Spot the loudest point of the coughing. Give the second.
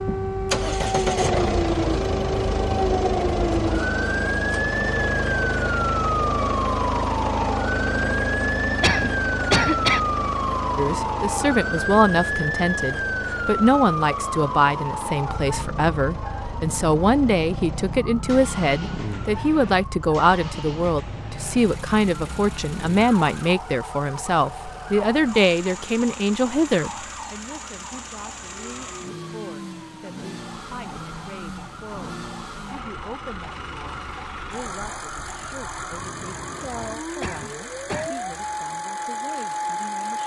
10 s.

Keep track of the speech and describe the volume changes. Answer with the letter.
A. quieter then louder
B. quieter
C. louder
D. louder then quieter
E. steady
B.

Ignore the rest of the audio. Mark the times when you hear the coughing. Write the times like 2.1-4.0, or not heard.
8.8-10.0, 37.2-38.1.